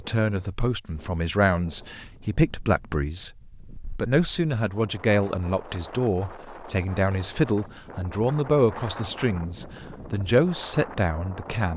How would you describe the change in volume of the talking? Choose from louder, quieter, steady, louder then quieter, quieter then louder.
steady.